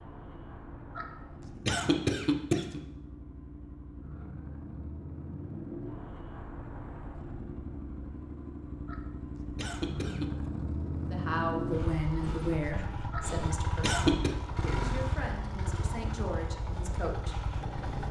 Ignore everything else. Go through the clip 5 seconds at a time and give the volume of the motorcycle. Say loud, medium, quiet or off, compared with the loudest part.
medium, medium, loud, loud.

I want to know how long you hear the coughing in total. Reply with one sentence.
The coughing can be heard for 5 seconds in total.